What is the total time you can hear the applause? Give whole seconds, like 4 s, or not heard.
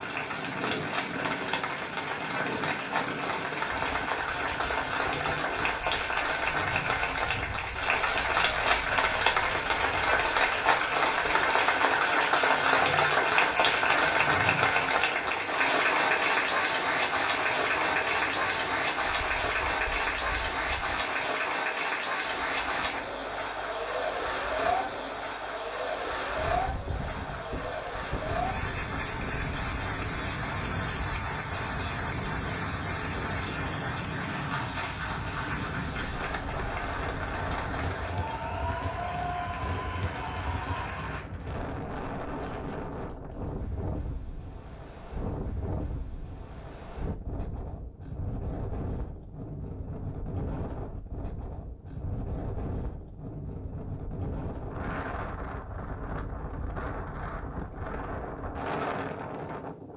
41 s.